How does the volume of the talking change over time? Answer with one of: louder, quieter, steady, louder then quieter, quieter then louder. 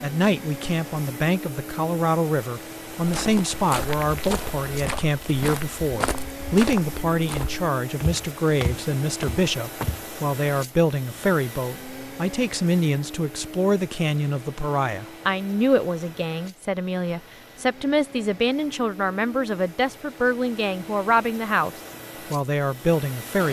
steady.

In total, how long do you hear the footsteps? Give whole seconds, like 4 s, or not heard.
7 s.